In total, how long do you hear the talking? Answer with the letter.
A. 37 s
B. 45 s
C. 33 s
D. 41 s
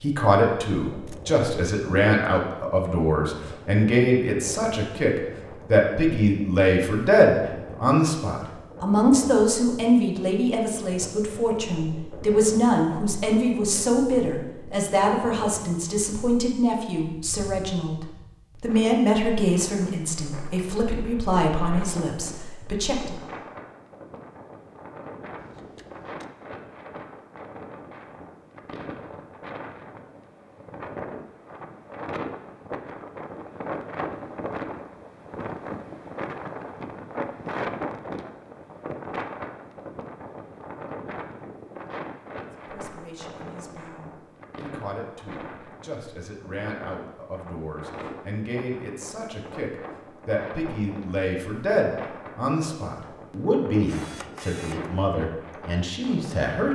A.